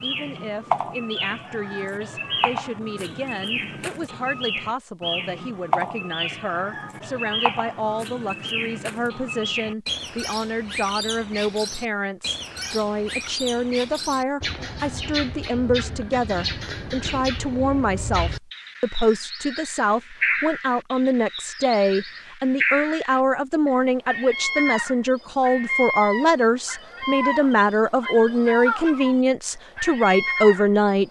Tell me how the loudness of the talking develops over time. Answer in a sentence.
The volume of the talking goes up.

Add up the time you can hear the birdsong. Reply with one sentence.
You can hear the birdsong for 31 seconds altogether.